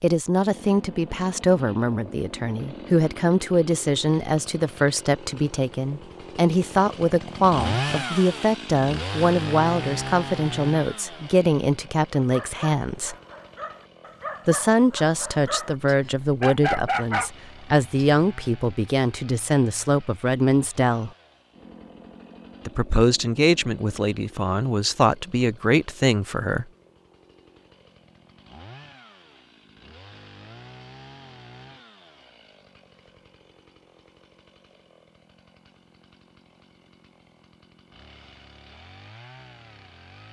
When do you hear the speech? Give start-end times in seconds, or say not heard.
0.0-13.2, 14.4-21.1, 22.6-26.6.